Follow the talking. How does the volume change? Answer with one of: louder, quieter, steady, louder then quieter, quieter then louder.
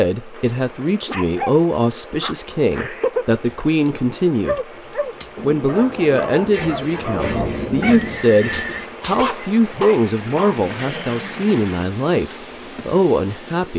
steady.